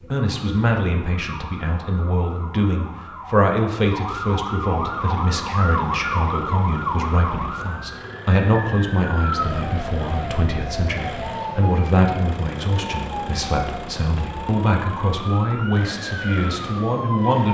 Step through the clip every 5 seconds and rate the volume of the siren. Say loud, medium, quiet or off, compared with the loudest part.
medium, loud, loud, loud.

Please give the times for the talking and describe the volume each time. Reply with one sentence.
You can hear the talking from 0.1 to 17.4 s, at a steady volume.